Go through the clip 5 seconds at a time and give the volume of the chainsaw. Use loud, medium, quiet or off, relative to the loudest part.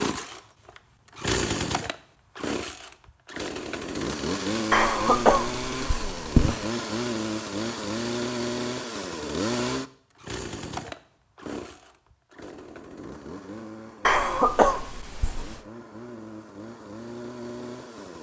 loud, loud, medium, medium.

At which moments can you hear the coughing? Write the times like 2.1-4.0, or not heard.
4.7-6.5, 14.1-15.6.